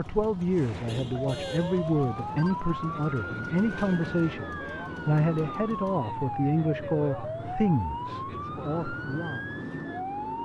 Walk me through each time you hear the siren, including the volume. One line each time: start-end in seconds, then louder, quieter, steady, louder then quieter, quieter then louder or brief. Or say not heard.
0.5-10.4 steady.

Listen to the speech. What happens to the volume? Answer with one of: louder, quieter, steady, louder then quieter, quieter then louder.
steady.